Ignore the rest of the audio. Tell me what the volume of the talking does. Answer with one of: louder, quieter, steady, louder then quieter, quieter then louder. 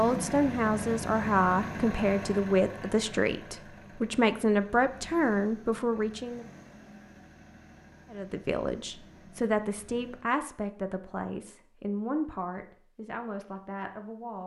quieter.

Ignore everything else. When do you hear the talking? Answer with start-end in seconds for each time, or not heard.
0.0-6.5, 8.1-14.4.